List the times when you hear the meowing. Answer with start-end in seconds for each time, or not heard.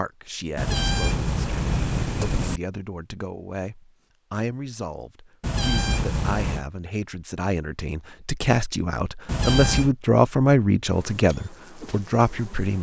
0.6-2.6, 5.4-6.7, 9.2-9.9.